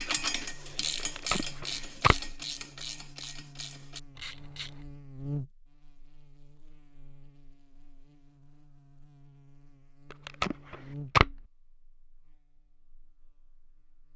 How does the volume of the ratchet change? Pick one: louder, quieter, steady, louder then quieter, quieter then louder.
quieter.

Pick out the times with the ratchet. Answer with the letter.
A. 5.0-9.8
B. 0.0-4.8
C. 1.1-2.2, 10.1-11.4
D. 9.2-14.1
B.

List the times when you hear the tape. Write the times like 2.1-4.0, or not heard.
1.1-2.2, 10.1-11.4.